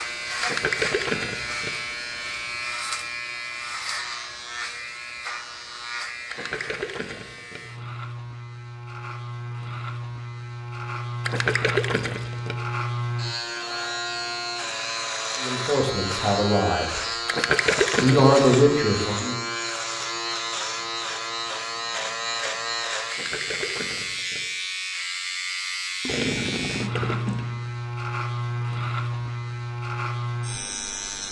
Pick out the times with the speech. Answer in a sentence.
The speech can be heard from 15.4 to 17.0 s and from 18.0 to 19.4 s.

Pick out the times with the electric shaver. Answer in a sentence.
The electric shaver can be heard from 0.0 to 31.2 s.